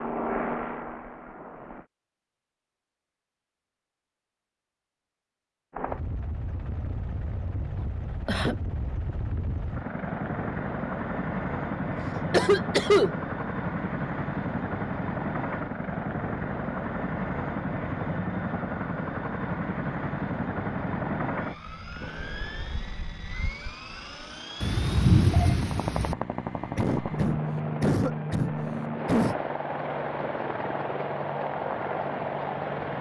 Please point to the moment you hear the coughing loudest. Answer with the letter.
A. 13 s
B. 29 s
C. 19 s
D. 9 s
A.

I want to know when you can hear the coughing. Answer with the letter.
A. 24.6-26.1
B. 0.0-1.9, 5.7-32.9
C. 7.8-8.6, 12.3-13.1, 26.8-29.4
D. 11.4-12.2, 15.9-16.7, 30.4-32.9
C.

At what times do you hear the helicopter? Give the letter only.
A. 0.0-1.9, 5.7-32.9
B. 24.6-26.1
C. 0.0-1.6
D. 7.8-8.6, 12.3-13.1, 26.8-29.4
A.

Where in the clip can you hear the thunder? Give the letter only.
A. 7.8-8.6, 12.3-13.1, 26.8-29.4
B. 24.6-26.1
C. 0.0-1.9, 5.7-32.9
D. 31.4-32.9
B.